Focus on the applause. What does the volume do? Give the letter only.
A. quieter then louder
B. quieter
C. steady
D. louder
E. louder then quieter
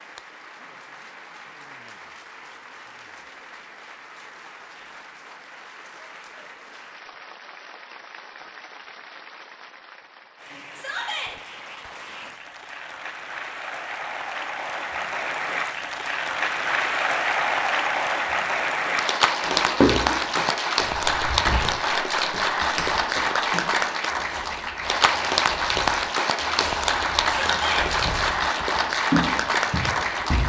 D.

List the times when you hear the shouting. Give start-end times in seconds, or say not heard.
10.8-11.3, 27.4-27.9.